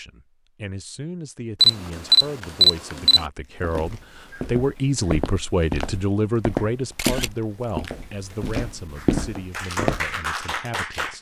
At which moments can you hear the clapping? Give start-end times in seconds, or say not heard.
8.9-11.1.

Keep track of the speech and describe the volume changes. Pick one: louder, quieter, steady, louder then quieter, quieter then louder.
louder then quieter.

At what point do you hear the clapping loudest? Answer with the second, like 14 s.
10 s.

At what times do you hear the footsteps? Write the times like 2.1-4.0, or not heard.
3.6-10.1.